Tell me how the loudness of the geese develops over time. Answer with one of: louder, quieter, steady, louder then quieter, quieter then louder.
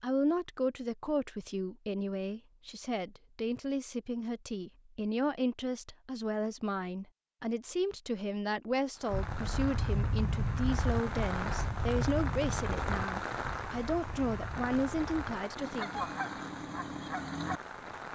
quieter then louder.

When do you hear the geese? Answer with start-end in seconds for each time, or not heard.
9.1-17.6.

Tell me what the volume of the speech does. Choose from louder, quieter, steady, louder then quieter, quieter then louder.
steady.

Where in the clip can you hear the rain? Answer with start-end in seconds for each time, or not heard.
8.9-18.1.